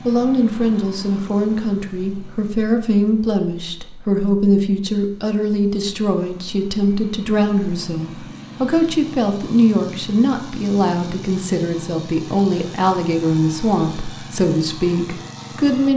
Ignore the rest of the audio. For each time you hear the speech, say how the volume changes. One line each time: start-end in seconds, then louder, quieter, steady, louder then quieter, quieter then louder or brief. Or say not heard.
0.1-15.9 steady.